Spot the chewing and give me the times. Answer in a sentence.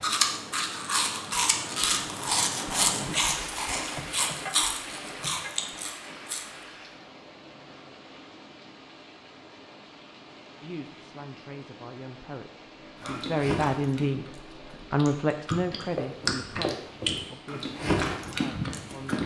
You can hear the chewing from 0.0 to 6.5 s and from 13.0 to 19.2 s.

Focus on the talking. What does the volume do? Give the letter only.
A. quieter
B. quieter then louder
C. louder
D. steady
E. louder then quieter
E.